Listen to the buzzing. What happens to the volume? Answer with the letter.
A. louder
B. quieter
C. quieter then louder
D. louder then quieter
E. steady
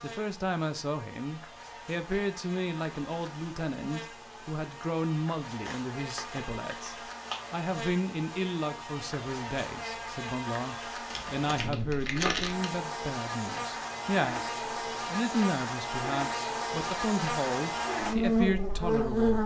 A.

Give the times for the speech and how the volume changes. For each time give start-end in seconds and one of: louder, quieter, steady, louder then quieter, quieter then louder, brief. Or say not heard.
0.0-19.4 steady.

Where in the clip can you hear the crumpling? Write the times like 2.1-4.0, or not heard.
5.6-7.6, 11.1-12.7.